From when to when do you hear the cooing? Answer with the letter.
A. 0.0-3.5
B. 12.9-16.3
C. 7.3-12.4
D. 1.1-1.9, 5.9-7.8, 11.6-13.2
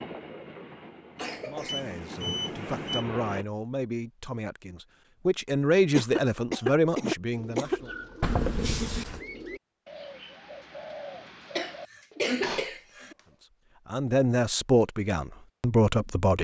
C.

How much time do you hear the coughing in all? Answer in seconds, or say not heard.
4 s.